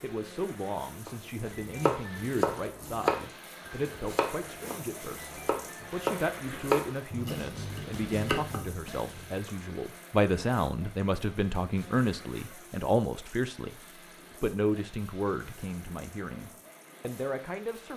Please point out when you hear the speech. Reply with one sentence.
The speech can be heard from 0.0 to 13.8 s and from 14.4 to 17.9 s.